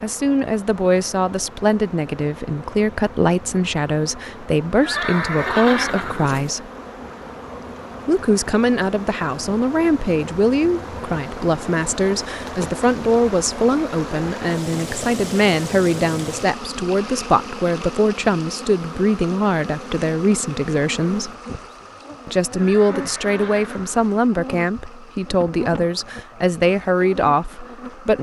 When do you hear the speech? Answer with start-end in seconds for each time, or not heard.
0.0-6.7, 8.1-21.3, 22.2-28.1.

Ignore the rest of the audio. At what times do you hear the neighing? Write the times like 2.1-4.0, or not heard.
4.8-6.5, 22.6-24.2.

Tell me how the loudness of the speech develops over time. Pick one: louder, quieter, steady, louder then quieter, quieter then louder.
steady.